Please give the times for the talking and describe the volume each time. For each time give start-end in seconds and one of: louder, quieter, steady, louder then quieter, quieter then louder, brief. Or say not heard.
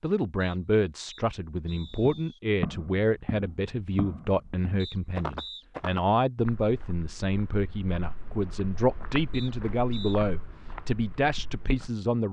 0.0-12.2 steady.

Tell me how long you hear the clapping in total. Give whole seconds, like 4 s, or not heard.
not heard.